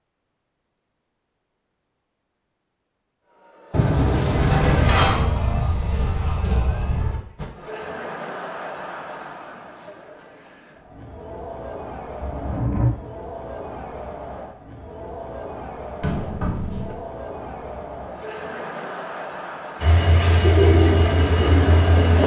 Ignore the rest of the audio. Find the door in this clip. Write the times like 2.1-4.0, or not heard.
3.7-5.2, 12.2-12.9, 16.0-16.9.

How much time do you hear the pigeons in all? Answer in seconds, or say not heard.
2 s.